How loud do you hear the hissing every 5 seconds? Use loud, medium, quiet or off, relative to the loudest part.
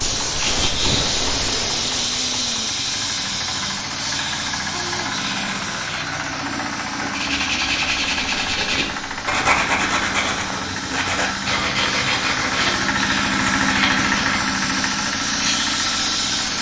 loud, medium, medium, loud.